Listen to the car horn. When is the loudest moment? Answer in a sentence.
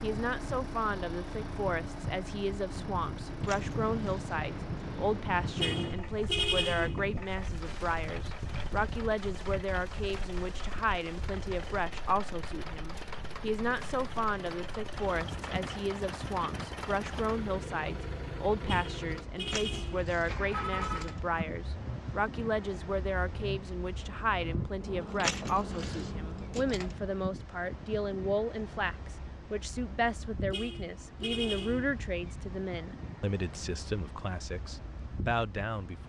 The loudest moment of the car horn is at 6 seconds.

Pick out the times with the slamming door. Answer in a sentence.
You can't hear the slamming door here.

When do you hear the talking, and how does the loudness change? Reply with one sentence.
You can hear the talking from 0.0 to 36.0 s, at a steady volume.